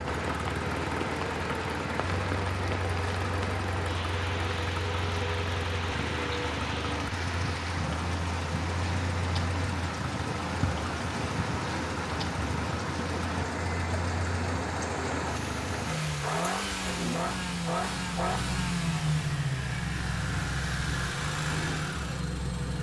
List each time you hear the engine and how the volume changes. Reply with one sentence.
You can hear the engine from 0.0 to 22.7 s, at a steady volume.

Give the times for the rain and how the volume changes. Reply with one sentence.
You can hear the rain from 0.0 to 22.7 s, at a steady volume.